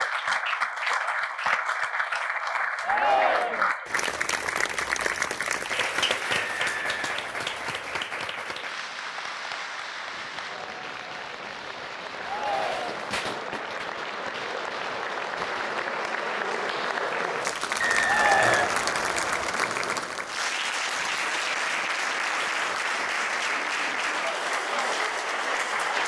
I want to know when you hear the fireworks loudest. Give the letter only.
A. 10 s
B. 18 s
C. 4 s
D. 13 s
D.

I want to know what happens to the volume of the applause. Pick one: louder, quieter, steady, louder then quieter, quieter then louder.
quieter then louder.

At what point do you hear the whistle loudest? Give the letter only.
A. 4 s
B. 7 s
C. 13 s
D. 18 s
D.